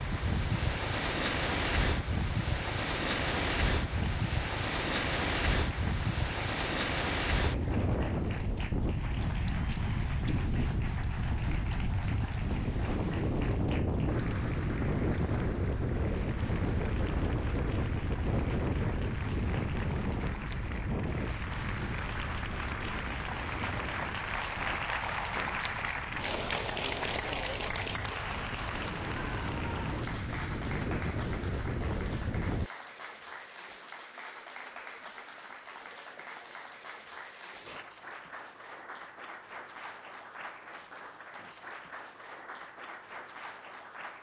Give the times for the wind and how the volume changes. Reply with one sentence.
You can hear the wind from 0.0 to 32.7 s, getting quieter.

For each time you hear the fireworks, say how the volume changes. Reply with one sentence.
You can't hear the fireworks here.